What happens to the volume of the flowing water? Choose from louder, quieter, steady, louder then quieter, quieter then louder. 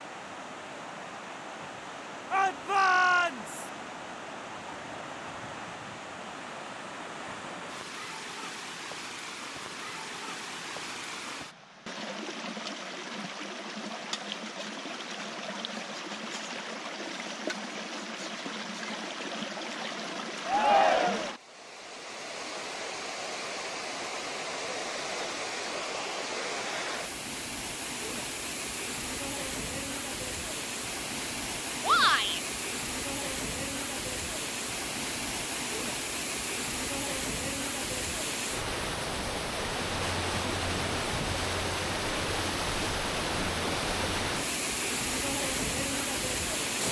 louder.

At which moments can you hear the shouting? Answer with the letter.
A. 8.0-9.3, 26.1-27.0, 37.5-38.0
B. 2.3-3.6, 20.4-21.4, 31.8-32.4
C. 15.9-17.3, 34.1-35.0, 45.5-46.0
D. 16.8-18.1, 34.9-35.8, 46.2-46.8
B.